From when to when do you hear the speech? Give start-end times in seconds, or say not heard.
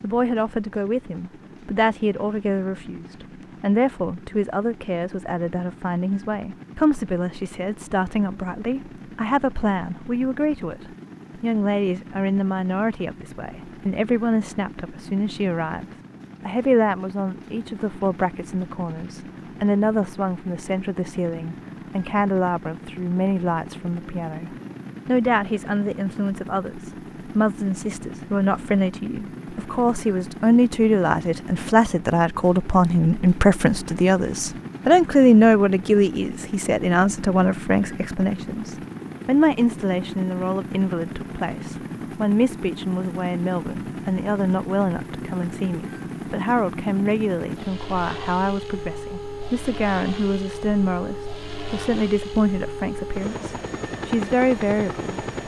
0.0-55.2.